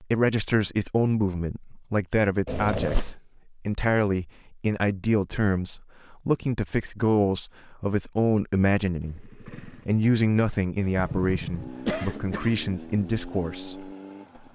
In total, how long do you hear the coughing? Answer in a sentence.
The coughing can be heard for 2 seconds in total.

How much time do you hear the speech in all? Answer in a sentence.
You can hear the speech for 14 seconds altogether.